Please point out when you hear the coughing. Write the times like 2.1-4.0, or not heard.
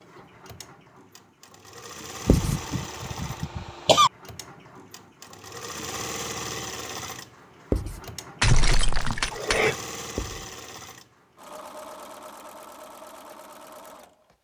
2.2-4.1, 8.4-9.8.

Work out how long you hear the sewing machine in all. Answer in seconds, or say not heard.
14 s.